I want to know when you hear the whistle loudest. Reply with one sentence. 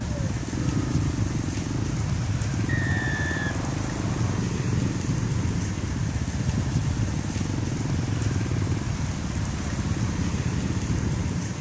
The volume of the whistle peaks at 3 seconds.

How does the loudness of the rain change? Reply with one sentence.
The volume of the rain stays about the same.